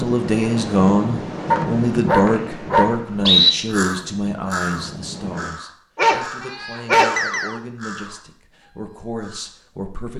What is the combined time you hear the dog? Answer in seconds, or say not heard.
3 s.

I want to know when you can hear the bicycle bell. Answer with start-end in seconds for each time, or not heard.
not heard.